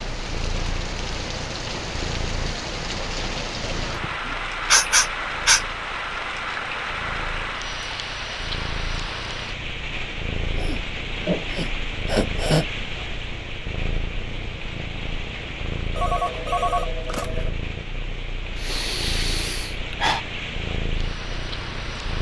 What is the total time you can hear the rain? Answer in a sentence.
The rain can be heard for 22 seconds in total.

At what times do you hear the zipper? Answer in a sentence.
You can't hear the zipper here.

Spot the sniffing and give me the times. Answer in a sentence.
The sniffing can be heard from 4.0 to 5.6 s, from 10.5 to 12.7 s and from 18.6 to 20.2 s.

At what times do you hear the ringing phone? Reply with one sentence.
You can hear the ringing phone from 15.9 to 17.5 s.